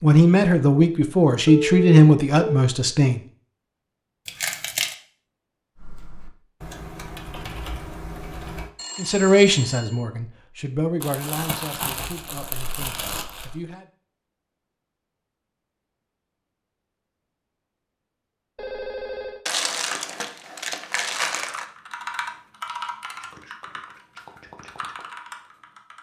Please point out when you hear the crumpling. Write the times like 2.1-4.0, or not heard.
4.2-5.0, 11.0-13.7, 19.4-21.6.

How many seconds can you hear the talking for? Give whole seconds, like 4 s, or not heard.
8 s.